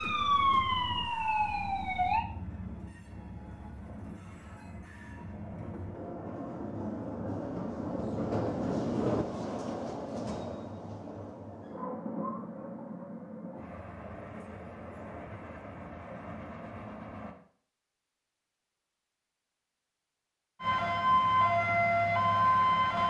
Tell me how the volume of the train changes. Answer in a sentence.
The loudness of the train goes up, then down.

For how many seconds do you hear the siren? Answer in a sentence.
The siren can be heard for 5 seconds in total.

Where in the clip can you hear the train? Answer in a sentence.
The train can be heard from 0.0 to 17.4 s.